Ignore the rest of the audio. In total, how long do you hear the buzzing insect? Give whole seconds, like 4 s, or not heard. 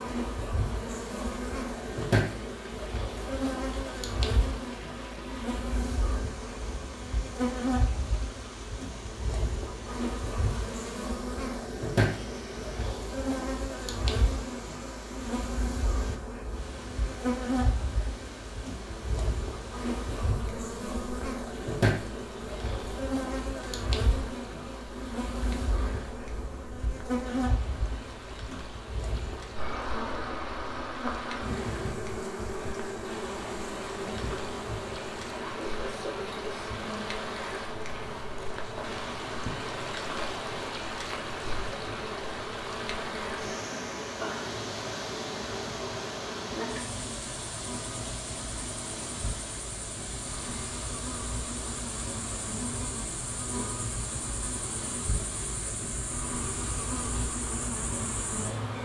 59 s.